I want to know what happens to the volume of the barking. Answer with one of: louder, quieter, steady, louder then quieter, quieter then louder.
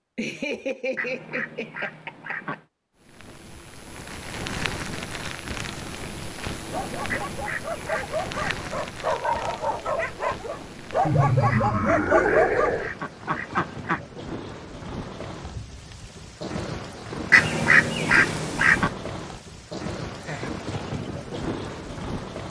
louder.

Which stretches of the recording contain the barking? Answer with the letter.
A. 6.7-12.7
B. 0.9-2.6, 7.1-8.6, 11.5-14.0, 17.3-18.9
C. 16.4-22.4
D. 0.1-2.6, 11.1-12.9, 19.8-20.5
A.